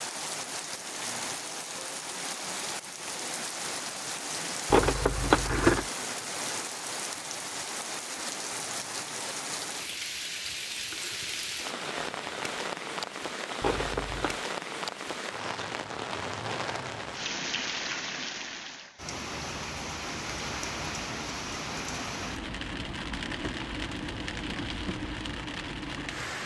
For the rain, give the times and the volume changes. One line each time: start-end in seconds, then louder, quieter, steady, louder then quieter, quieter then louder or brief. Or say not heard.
0.0-26.4 steady.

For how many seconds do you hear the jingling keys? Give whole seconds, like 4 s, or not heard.
2 s.